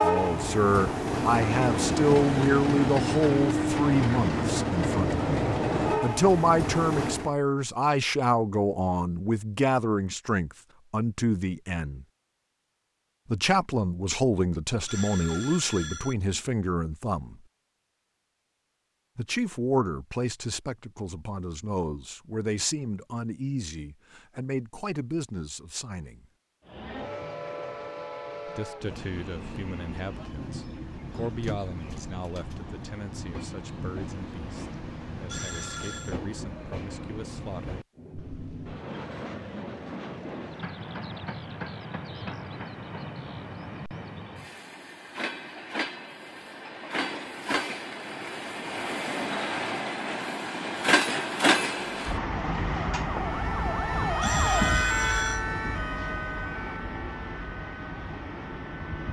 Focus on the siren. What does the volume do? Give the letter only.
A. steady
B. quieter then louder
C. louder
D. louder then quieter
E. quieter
D.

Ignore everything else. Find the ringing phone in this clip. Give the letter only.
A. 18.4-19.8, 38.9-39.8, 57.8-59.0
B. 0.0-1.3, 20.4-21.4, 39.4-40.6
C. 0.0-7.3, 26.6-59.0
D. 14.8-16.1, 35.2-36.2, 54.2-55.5
D.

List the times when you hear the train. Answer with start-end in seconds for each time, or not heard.
0.0-7.3, 26.6-59.0.